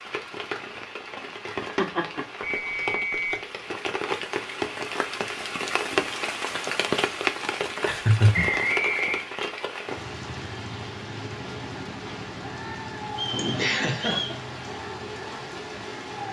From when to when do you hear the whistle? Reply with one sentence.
You can hear the whistle from 2.4 to 3.4 s, from 8.3 to 9.2 s and from 13.2 to 14.4 s.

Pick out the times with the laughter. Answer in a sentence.
You can hear the laughter from 1.6 to 2.2 s, from 7.8 to 8.6 s and from 13.3 to 14.3 s.